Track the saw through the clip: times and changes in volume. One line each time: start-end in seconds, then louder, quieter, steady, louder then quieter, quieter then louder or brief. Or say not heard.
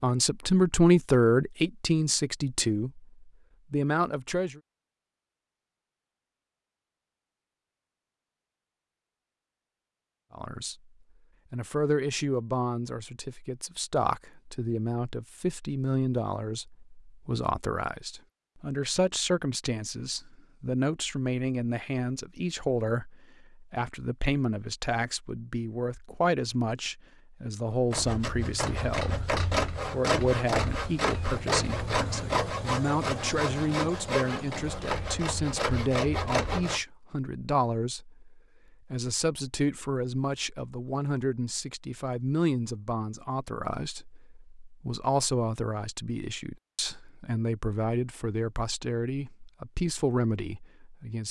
27.9-36.8 steady.